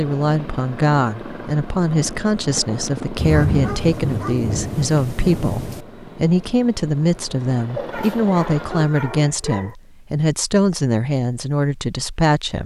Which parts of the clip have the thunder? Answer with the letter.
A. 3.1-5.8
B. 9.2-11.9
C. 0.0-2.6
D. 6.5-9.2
A.